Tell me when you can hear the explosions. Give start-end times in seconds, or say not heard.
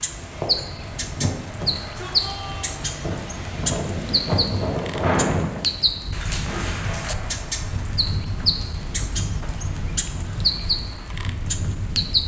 6.5-7.8.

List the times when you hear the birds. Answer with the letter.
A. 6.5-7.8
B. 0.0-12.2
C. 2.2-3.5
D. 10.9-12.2
B.